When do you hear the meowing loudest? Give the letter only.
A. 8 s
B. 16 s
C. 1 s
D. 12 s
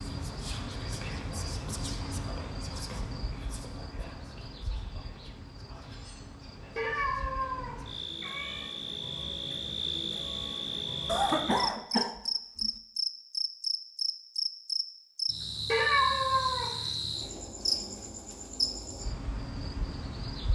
B.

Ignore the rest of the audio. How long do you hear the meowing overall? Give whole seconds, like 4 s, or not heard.
3 s.